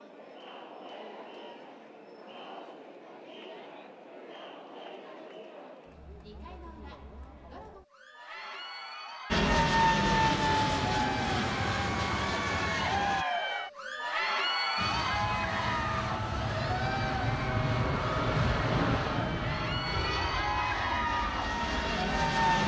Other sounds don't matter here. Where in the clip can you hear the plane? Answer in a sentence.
You can hear the plane from 9.3 to 13.2 s and from 14.8 to 22.6 s.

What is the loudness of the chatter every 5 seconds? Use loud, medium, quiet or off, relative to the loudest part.
quiet, quiet, loud, loud, loud.